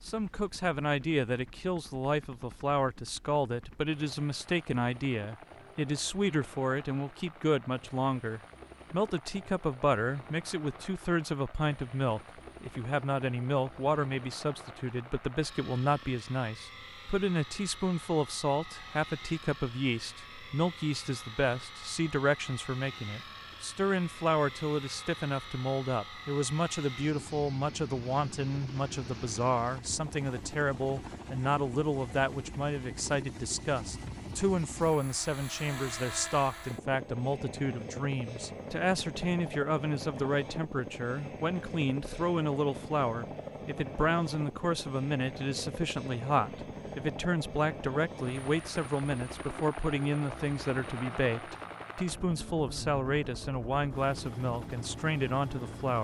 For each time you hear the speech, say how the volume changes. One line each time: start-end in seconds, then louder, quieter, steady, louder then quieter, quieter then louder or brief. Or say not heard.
0.1-55.9 steady.